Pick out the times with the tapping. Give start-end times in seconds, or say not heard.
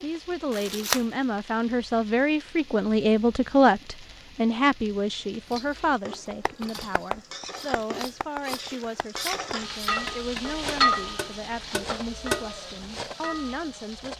6.1-12.4.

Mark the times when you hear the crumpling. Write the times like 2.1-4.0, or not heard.
0.5-1.1, 7.6-9.5.